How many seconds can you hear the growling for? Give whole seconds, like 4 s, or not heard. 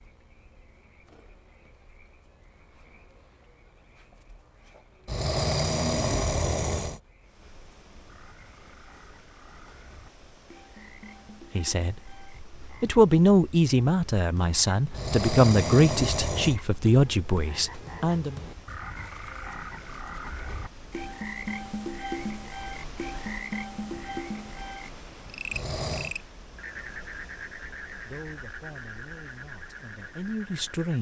4 s.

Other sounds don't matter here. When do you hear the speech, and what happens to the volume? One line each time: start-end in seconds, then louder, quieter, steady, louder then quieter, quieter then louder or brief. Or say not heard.
11.6-18.4 steady
28.1-30.9 brief.